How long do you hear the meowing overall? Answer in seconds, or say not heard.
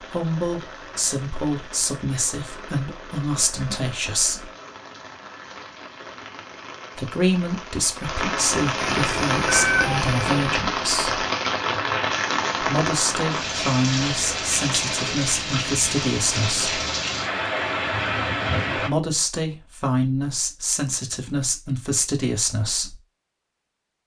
2 s.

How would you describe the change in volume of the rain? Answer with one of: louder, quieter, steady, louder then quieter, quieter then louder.
louder.